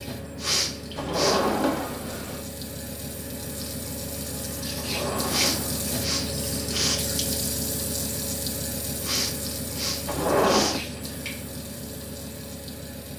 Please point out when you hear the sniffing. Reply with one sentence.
The sniffing can be heard from 0.3 to 1.4 s, from 5.2 to 7.0 s and from 9.0 to 10.8 s.